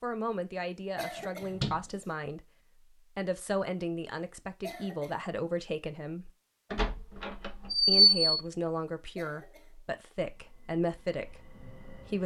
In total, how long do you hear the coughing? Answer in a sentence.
The coughing can be heard for 2 seconds in total.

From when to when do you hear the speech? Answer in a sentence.
You can hear the speech from 0.0 to 6.3 s and from 7.8 to 12.2 s.